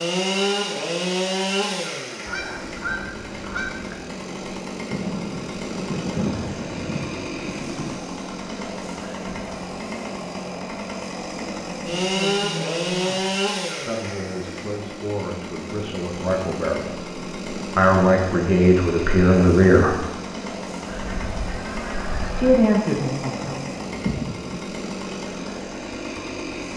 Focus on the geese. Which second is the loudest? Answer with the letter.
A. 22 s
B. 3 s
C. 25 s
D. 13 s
B.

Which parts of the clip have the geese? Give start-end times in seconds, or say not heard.
2.2-4.0, 20.9-22.6.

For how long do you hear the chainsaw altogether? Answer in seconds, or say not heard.
27 s.